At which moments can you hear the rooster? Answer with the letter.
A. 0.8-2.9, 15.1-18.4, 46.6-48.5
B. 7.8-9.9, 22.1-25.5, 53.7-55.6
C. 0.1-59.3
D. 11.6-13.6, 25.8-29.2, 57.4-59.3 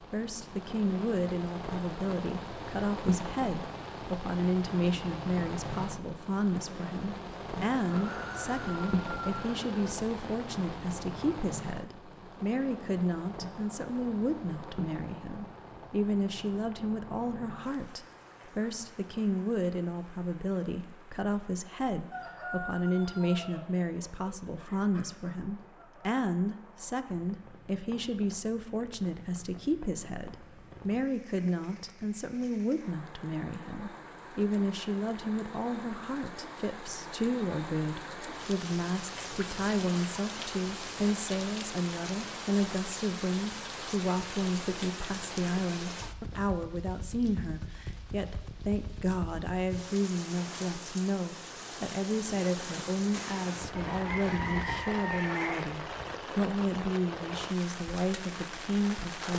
B.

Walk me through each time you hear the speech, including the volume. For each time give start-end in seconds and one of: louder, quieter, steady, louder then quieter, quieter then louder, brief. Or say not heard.
0.1-59.3 steady.